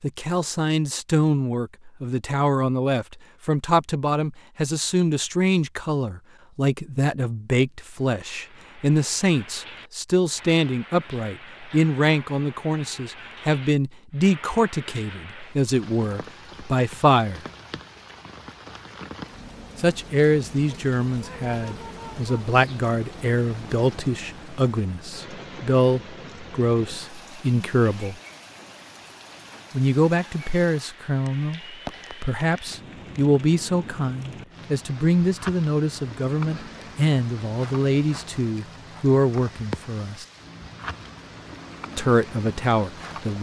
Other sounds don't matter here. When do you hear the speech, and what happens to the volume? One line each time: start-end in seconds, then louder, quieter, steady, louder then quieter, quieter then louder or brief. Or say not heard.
0.0-17.4 steady
19.8-28.1 steady
29.7-40.2 steady
42.0-43.3 brief.